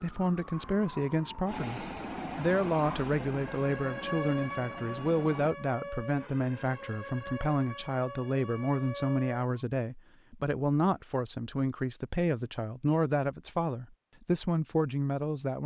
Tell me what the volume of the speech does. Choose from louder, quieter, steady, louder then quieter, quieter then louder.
steady.